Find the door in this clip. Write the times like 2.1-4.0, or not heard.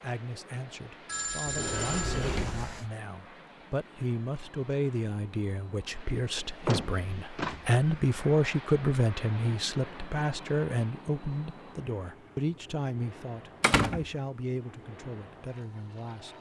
1.4-2.8, 6.4-8.1, 13.6-14.1.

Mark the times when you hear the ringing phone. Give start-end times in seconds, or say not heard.
1.1-2.9.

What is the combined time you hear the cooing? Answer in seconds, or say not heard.
not heard.